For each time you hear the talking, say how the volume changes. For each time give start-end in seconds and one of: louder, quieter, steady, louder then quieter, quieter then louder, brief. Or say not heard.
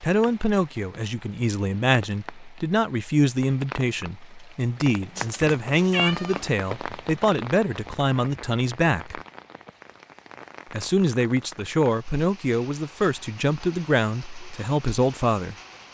0.0-9.2 steady
10.7-15.6 steady.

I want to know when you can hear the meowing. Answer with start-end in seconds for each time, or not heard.
5.2-6.5.